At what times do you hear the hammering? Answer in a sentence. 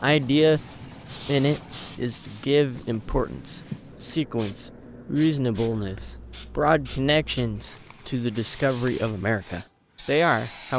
The hammering can't be heard in this clip.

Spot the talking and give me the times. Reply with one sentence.
The talking can be heard from 0.0 to 10.7 s.